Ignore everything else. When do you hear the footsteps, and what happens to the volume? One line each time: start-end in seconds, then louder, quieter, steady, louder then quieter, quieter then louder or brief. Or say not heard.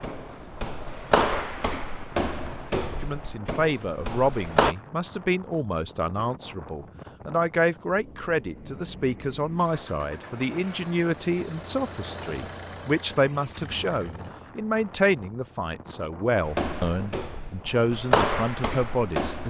0.0-4.8 quieter
16.4-19.4 brief.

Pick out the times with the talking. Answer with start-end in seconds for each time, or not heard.
3.0-19.4.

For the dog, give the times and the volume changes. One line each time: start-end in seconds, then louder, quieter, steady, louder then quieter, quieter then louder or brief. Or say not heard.
not heard.